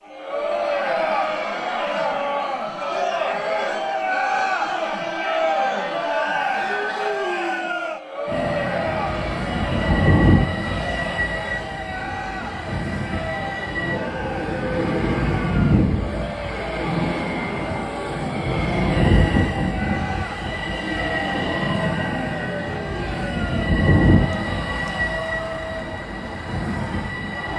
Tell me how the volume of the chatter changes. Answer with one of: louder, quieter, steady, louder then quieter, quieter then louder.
quieter.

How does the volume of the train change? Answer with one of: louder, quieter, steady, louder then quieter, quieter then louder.
steady.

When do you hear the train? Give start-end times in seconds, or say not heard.
8.2-27.5.